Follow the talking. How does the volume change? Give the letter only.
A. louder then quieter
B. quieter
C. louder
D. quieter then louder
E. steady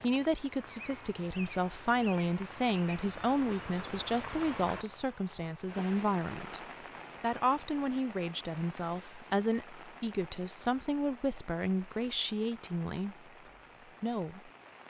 E.